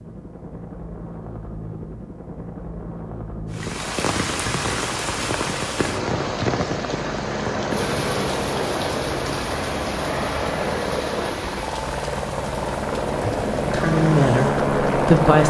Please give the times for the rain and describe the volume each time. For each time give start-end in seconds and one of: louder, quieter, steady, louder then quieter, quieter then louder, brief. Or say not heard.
3.5-15.4 quieter.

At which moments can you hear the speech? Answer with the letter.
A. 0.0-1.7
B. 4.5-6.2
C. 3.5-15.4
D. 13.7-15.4
D.